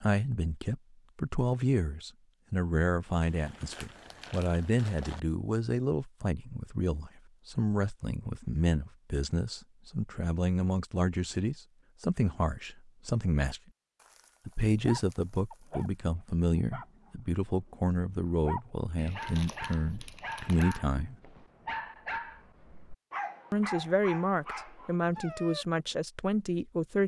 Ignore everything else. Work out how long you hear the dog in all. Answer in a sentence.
The dog can be heard for 11 seconds in total.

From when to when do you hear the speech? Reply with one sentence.
The speech can be heard from 0.0 to 13.6 s, from 14.4 to 21.1 s and from 23.5 to 27.0 s.